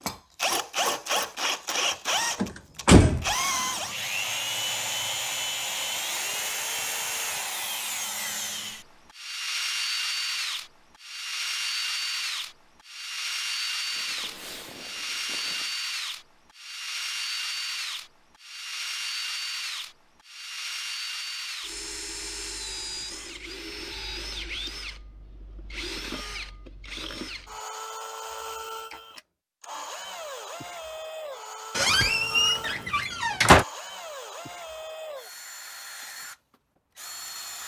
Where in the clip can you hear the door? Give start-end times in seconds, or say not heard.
2.4-3.2, 31.8-33.6.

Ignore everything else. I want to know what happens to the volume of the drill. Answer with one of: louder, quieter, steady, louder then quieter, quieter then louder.
quieter.